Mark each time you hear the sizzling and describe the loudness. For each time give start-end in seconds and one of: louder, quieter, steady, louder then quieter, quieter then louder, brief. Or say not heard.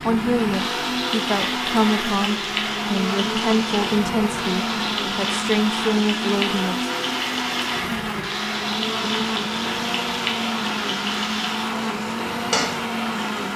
0.0-13.5 steady.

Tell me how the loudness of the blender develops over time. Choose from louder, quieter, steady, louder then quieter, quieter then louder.
steady.